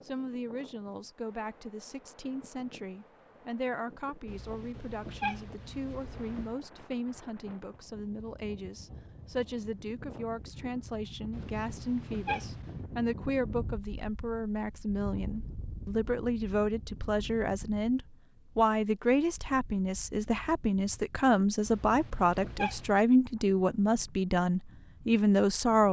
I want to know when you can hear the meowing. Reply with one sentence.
The meowing can be heard from 4.2 to 6.5 s, from 11.3 to 12.8 s and from 21.6 to 23.0 s.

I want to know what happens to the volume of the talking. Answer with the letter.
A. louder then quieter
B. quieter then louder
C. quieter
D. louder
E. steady
D.